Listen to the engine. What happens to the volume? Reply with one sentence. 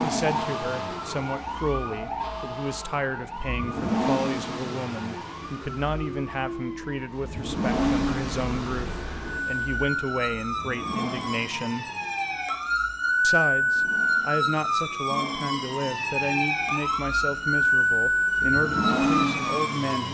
The volume of the engine goes down, then up.